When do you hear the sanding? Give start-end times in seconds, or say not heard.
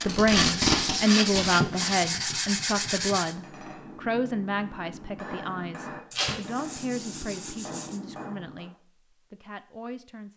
0.3-3.4, 6.1-8.0.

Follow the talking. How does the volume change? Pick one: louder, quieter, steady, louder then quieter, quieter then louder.
quieter.